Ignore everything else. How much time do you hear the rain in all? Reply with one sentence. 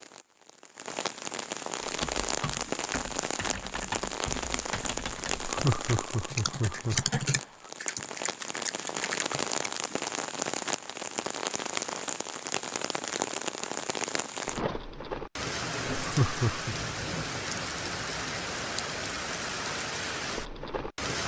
The rain can be heard for 21 seconds in total.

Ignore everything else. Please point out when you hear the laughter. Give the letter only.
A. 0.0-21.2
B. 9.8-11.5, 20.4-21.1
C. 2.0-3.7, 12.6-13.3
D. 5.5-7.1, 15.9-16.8
D.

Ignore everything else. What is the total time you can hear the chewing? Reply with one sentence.
The chewing can't be heard in this clip.